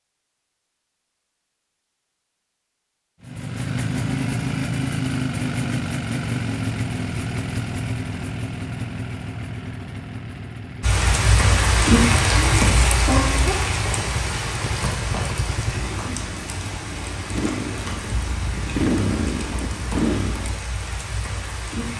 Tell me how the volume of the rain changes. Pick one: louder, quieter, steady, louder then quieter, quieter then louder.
quieter.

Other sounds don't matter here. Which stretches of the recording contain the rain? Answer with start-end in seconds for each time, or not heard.
10.8-21.9.